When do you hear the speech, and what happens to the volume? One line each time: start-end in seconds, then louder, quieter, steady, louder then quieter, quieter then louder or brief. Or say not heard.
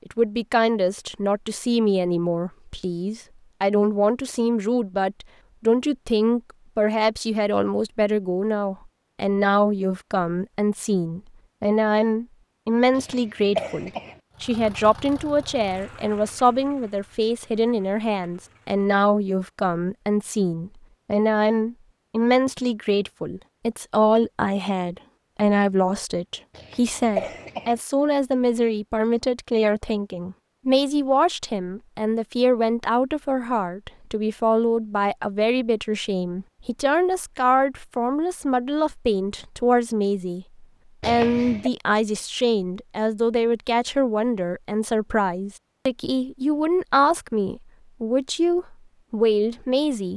0.1-50.1 steady.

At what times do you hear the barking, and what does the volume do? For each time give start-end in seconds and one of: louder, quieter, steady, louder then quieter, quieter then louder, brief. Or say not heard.
not heard.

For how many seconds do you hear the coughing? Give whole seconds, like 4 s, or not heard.
3 s.